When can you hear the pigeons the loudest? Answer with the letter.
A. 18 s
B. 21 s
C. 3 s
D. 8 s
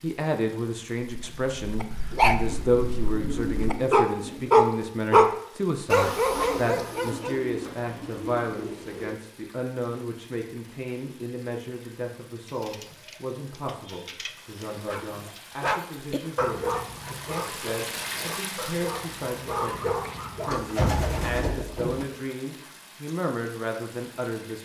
B.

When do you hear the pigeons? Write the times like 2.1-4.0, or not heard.
2.5-4.5, 6.3-9.2, 12.4-15.4, 20.5-22.1.